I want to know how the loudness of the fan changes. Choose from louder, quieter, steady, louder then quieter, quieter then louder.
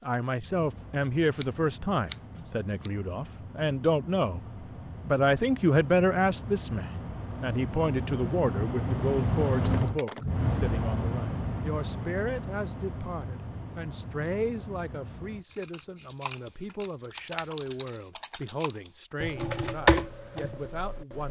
louder then quieter.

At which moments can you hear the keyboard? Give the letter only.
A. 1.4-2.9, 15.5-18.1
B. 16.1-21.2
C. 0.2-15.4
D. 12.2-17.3
B.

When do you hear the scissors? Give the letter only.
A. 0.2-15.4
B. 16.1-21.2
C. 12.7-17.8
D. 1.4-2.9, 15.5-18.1
D.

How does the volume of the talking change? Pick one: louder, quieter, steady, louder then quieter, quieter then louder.
quieter.